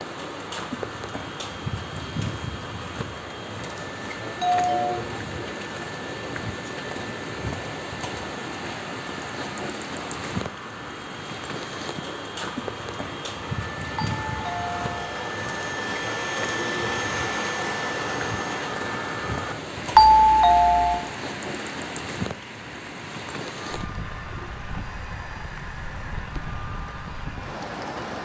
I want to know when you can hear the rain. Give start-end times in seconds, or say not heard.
0.0-28.1.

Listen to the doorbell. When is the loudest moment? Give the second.
20 s.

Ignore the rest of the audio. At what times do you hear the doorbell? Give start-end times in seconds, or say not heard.
4.4-5.0, 13.9-14.9, 19.9-21.0.